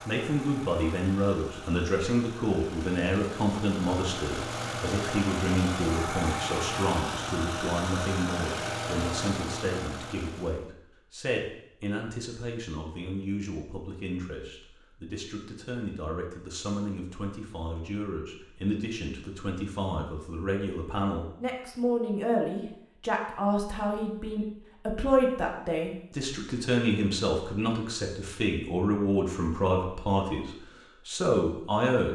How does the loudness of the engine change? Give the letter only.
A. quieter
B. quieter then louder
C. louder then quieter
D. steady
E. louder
E.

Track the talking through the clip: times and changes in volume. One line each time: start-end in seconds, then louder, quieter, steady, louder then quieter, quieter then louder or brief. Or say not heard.
0.1-32.1 quieter then louder.